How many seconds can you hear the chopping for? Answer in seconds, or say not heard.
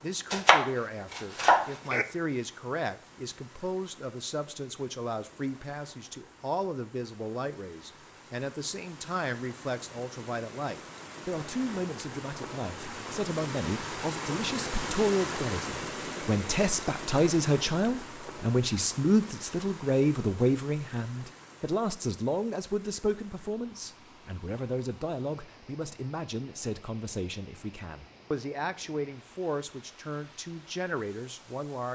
2 s.